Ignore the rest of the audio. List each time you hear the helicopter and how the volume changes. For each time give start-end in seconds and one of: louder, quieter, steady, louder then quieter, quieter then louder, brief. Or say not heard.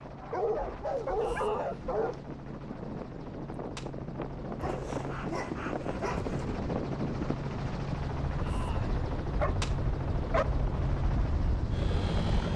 0.0-12.5 louder.